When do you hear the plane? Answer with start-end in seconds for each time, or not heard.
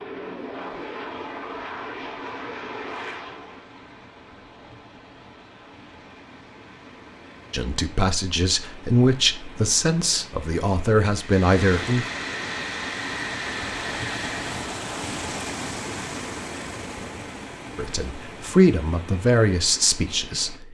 0.0-3.6, 11.1-14.7.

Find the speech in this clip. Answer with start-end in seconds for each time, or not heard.
7.5-12.1, 17.8-20.6.